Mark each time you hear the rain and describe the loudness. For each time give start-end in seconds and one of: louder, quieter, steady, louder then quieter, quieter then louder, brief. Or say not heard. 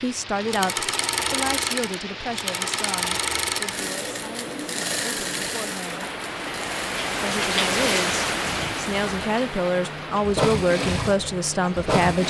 0.0-12.2 louder then quieter.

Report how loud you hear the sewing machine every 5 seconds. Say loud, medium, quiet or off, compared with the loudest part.
loud, medium, loud.